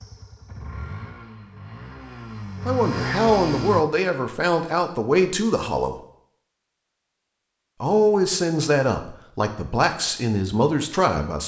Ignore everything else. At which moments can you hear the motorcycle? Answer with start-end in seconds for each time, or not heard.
0.0-3.9.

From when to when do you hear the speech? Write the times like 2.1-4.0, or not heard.
2.6-6.0, 7.8-11.4.